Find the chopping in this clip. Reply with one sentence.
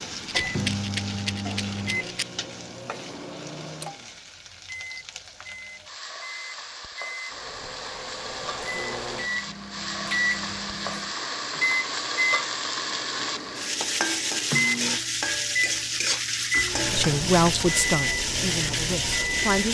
The chopping can't be heard in this clip.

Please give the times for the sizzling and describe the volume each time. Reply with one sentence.
You can hear the sizzling from 0.0 to 19.6 s, getting louder.